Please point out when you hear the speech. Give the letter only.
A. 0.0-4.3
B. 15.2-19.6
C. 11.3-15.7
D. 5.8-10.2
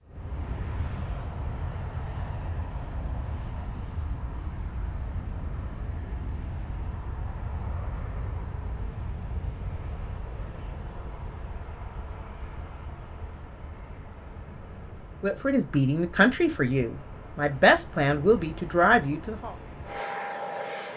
B.